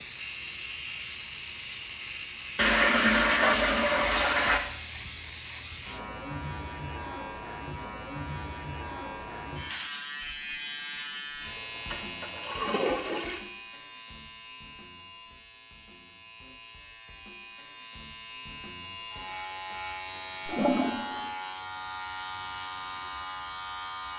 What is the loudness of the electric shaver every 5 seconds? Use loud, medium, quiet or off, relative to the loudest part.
loud, loud, loud, medium, loud.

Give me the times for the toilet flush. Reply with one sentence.
You can hear the toilet flush from 2.5 to 4.6 s, from 11.5 to 13.4 s and from 20.4 to 21.3 s.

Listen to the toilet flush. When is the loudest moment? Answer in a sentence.
The loudest moment of the toilet flush is at 3 seconds.